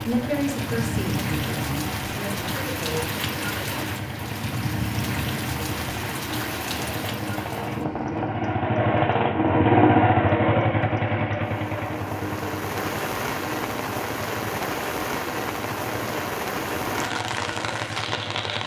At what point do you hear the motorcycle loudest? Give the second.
10 s.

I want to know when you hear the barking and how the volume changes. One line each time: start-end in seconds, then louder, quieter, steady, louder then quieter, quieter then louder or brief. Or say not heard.
not heard.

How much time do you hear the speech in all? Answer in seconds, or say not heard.
3 s.